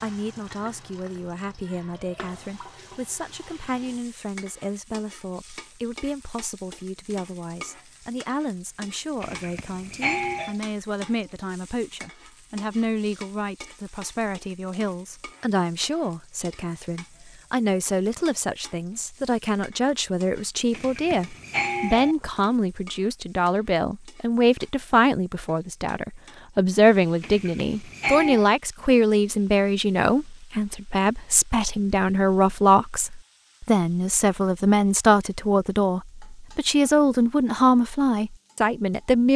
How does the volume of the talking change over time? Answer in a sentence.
The loudness of the talking goes up.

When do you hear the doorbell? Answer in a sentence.
The doorbell can be heard from 9.2 to 10.6 s, from 20.7 to 22.1 s and from 27.2 to 28.4 s.